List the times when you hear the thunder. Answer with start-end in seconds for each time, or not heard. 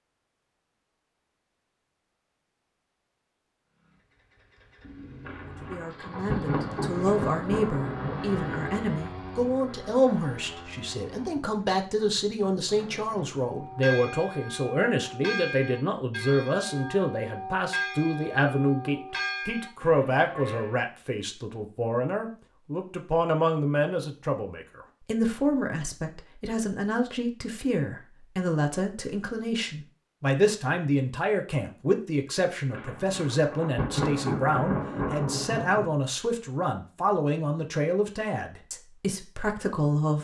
5.2-8.8, 32.7-35.9.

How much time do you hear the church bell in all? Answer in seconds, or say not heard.
7 s.